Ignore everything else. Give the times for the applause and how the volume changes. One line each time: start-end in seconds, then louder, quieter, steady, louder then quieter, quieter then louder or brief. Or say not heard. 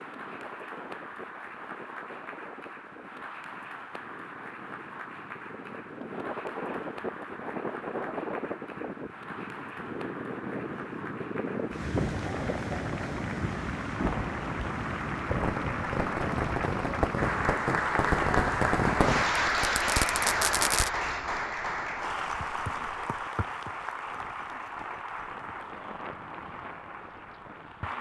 0.0-27.9 louder then quieter.